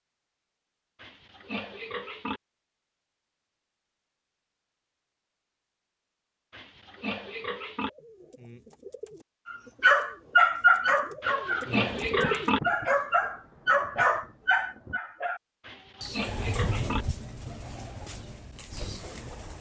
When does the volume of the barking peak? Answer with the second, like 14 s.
11 s.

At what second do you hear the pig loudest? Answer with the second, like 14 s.
12 s.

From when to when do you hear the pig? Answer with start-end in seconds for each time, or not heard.
1.0-2.4, 6.5-7.9, 11.2-12.6, 15.7-17.1.